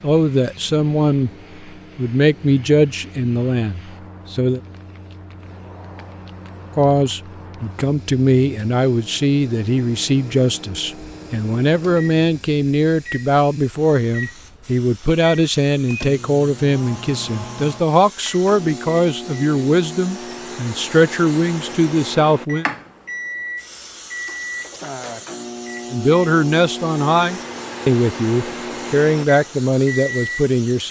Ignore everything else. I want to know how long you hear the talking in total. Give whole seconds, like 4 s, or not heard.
25 s.